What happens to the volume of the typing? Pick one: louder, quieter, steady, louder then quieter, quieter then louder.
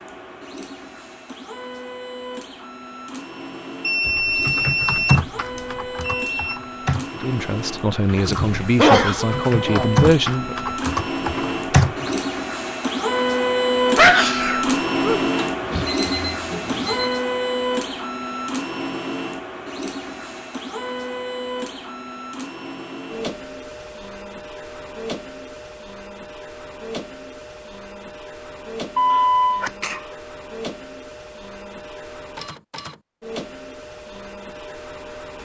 quieter then louder.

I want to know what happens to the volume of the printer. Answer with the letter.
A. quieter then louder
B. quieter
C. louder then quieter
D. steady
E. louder
C.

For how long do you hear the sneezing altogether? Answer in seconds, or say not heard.
3 s.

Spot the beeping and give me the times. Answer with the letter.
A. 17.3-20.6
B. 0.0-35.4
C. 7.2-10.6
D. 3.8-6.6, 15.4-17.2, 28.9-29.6
D.